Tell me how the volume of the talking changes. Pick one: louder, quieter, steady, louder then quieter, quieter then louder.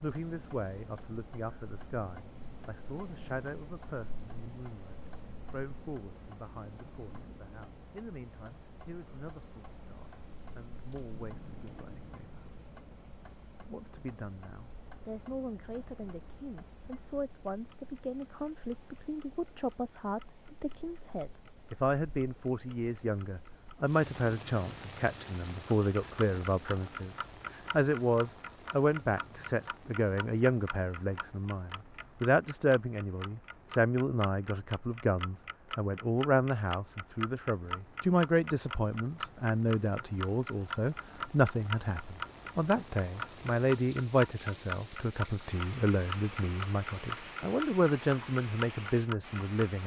louder.